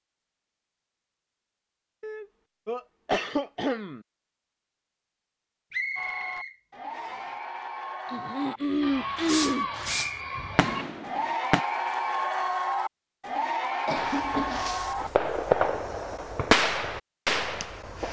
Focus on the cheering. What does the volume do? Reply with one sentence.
The volume of the cheering goes up.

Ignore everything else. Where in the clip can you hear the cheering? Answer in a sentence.
The cheering can be heard from 6.0 to 15.7 s.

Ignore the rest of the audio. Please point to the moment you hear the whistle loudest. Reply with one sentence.
The volume of the whistle peaks at 6 seconds.